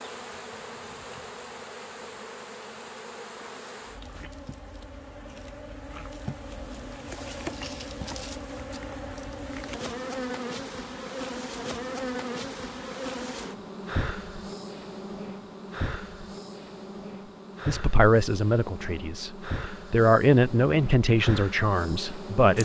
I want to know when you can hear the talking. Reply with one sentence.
The talking can be heard from 17.6 to 22.6 s.